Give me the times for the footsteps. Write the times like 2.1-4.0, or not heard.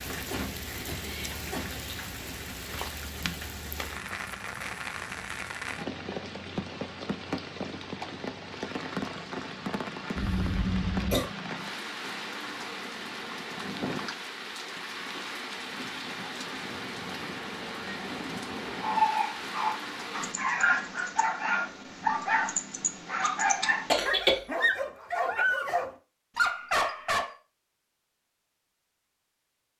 not heard.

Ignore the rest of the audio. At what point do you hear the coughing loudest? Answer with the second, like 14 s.
24 s.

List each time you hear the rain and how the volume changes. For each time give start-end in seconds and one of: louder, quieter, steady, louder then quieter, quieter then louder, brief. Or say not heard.
0.0-20.4 steady.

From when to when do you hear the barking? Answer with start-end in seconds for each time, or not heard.
18.8-27.4.